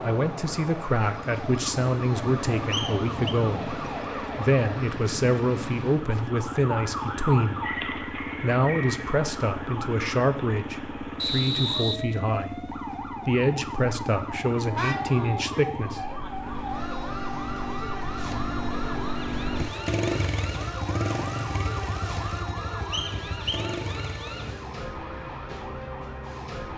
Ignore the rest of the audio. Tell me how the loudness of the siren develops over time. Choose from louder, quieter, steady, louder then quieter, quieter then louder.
steady.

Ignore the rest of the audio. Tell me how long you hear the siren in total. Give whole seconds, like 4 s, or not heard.
27 s.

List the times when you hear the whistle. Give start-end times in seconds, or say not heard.
2.7-3.4, 11.2-12.0, 22.9-23.6.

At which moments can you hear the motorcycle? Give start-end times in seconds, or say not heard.
0.0-24.6.